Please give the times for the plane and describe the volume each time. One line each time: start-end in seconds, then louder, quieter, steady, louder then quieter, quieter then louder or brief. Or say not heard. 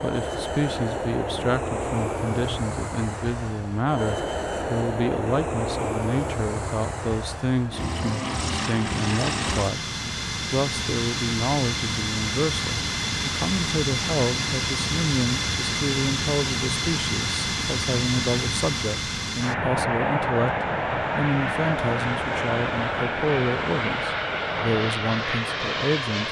0.0-26.2 steady.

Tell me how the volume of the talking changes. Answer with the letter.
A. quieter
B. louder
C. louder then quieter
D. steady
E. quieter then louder
D.